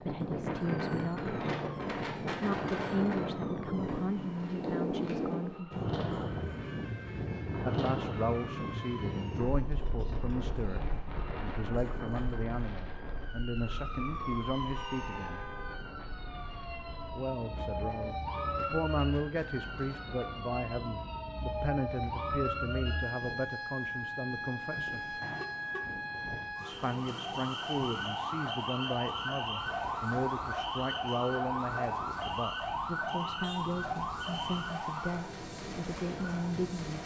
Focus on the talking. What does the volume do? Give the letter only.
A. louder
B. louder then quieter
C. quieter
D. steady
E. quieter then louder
D.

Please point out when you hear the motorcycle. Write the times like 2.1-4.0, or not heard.
not heard.